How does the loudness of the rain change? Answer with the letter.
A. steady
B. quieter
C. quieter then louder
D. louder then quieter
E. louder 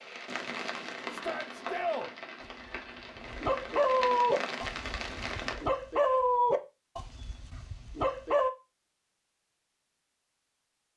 C.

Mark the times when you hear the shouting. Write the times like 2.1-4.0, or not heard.
1.1-2.1.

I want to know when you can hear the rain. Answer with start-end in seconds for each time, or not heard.
0.0-5.7.